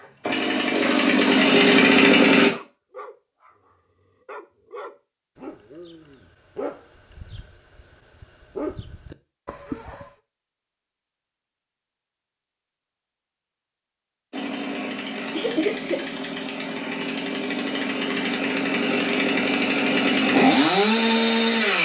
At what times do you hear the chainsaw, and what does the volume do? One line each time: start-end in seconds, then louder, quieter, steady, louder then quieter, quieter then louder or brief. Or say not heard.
0.0-2.5 brief
14.3-21.8 louder.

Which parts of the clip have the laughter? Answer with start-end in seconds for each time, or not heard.
15.3-16.1.